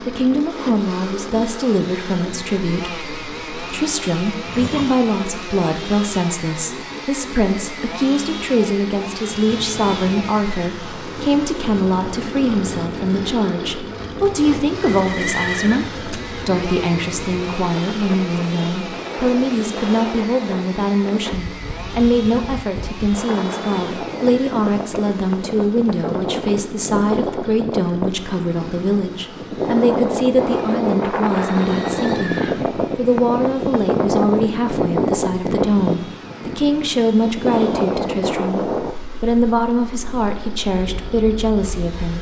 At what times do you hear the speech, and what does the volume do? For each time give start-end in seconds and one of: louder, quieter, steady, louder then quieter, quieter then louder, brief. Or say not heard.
0.0-42.1 steady.